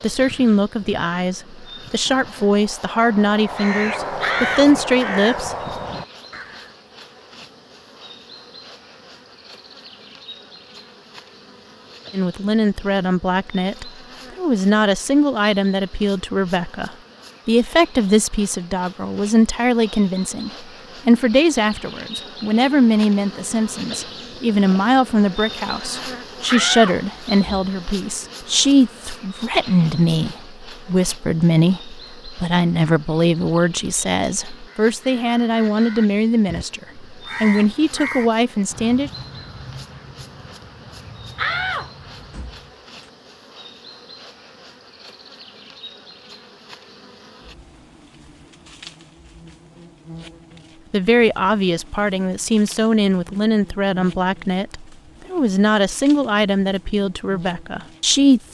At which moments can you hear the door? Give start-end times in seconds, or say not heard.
4.2-4.7, 26.4-28.1, 41.4-43.1.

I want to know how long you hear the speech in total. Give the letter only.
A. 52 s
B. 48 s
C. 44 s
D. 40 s
D.